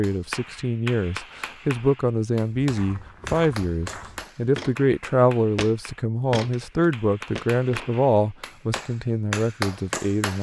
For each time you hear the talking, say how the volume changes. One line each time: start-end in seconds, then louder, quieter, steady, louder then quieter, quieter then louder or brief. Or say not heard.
0.0-10.3 steady.